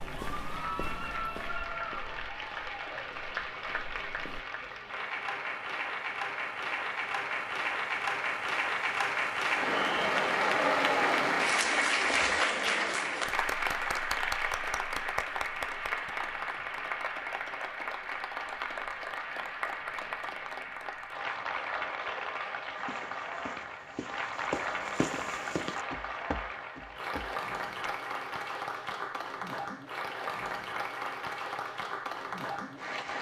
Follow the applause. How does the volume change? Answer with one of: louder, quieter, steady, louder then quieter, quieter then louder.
louder then quieter.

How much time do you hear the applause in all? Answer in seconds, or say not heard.
33 s.